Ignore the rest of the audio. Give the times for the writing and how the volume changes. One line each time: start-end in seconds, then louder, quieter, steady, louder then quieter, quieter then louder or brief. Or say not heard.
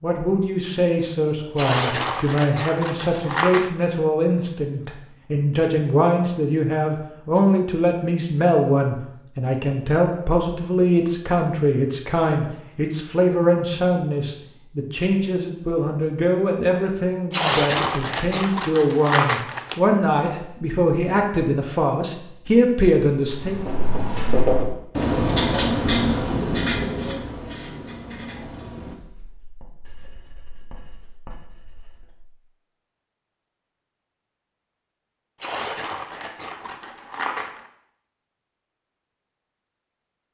23.2-32.2 quieter.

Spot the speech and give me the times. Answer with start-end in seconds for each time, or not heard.
0.0-23.6.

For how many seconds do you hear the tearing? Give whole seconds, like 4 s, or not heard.
7 s.